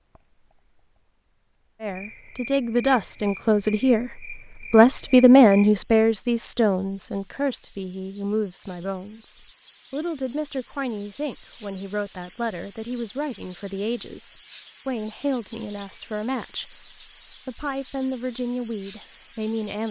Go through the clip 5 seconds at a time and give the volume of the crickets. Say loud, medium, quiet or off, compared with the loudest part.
quiet, medium, loud, loud.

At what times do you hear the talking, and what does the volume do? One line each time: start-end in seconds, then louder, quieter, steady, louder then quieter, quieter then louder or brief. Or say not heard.
1.8-19.8 quieter.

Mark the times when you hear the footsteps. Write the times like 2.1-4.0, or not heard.
not heard.